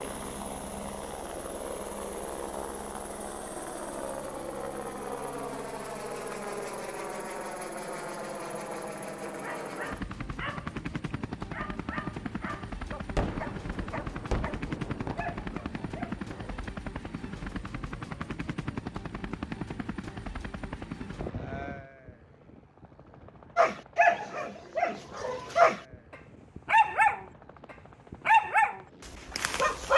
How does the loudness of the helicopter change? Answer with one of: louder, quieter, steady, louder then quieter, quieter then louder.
quieter.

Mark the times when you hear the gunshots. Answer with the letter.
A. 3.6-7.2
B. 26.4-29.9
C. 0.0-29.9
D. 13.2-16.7
D.